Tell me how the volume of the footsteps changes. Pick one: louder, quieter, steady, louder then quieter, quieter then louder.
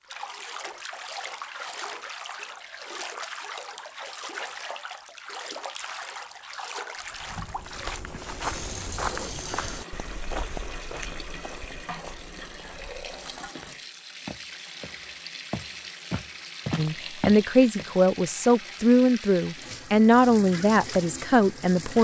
quieter then louder.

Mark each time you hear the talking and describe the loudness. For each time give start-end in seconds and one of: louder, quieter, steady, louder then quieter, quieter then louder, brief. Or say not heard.
16.8-21.9 steady.